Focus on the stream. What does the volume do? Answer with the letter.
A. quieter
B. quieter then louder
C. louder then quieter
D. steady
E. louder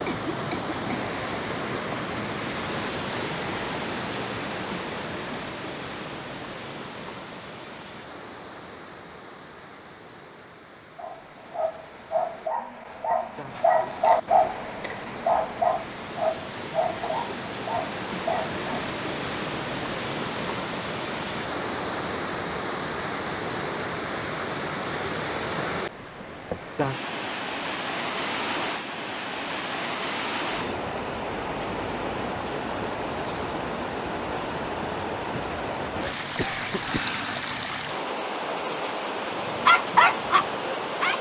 B.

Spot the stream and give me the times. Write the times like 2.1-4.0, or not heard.
0.0-41.1.